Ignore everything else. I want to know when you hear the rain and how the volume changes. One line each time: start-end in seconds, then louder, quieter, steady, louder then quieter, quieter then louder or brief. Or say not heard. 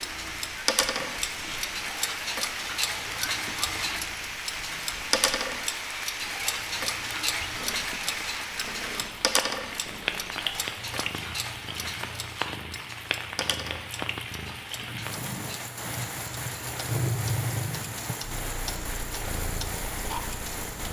0.0-20.8 steady.